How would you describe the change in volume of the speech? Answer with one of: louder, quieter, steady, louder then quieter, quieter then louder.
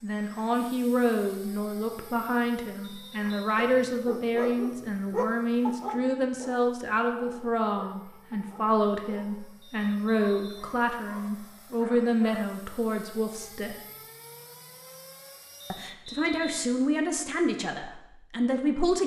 steady.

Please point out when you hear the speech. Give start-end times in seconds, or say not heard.
0.0-13.8, 15.7-19.0.